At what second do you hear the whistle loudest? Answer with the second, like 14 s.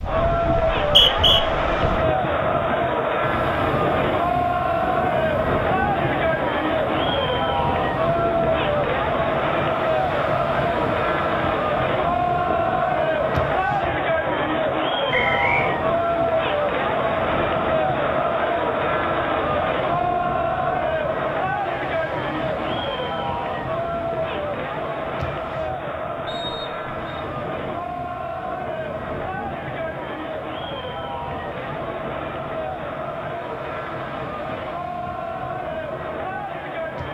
1 s.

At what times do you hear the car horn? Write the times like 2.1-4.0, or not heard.
not heard.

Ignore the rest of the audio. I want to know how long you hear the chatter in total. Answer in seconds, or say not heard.
37 s.